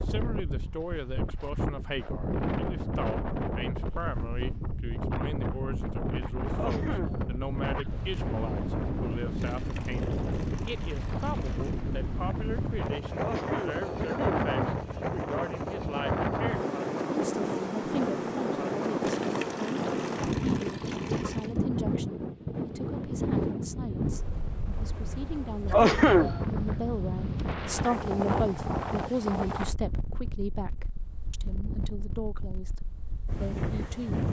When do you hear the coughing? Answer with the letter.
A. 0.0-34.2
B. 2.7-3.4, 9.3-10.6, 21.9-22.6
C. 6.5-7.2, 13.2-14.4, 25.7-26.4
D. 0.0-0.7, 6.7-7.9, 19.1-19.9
C.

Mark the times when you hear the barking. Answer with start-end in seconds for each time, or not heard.
not heard.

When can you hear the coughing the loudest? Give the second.
26 s.